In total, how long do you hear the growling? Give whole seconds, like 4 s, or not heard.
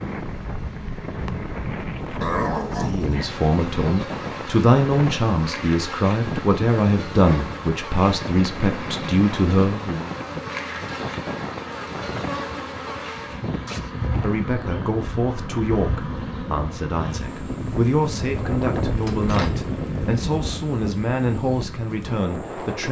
2 s.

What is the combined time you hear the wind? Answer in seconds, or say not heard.
23 s.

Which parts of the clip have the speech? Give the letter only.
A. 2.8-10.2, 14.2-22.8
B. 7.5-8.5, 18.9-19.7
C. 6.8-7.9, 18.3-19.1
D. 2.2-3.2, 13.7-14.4
A.